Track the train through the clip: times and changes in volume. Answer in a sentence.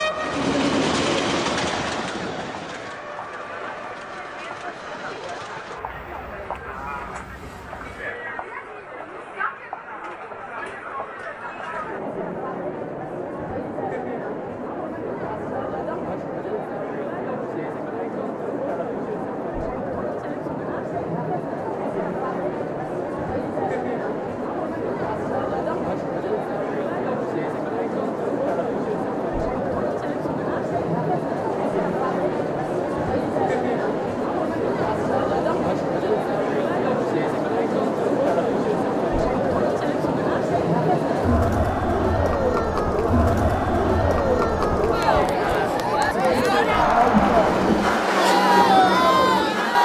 You can hear the train from 0.0 to 8.2 s, getting quieter; and briefly from 47.1 to 49.8 s.